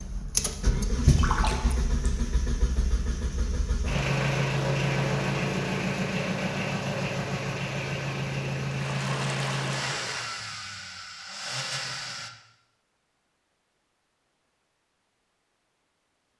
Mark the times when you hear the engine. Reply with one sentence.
You can hear the engine from 0.0 to 12.3 s.